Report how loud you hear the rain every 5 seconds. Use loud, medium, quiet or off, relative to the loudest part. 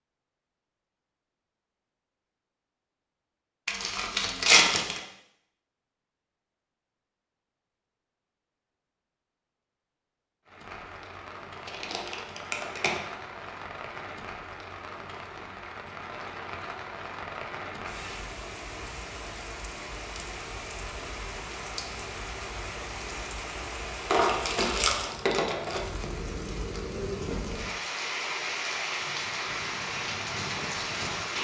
off, off, medium, medium, medium, loud, loud.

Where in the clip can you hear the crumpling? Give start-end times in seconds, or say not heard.
3.6-5.0, 11.7-13.0, 24.1-25.8.